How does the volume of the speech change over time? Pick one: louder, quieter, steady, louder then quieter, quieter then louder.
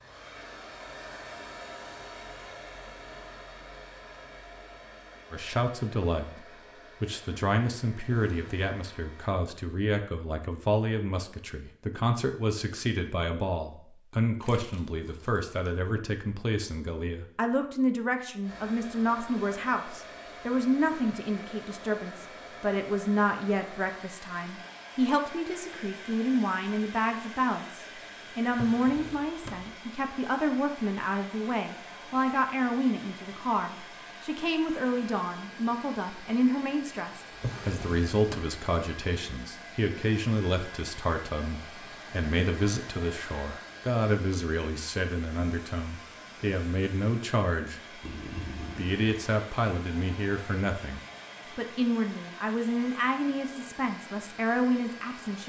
steady.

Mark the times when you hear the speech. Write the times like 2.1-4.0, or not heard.
5.3-48.0, 48.8-55.4.